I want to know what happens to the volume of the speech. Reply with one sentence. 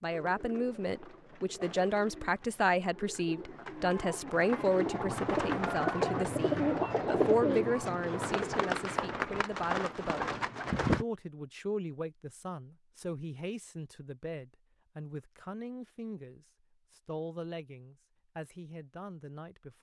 The volume of the speech goes down.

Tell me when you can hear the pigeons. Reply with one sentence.
The pigeons can be heard from 0.1 to 11.1 s.